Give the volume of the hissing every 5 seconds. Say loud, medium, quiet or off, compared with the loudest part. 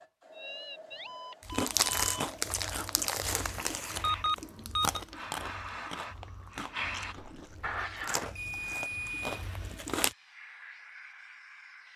medium, loud, medium.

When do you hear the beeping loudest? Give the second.
4 s.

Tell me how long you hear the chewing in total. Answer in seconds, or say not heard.
9 s.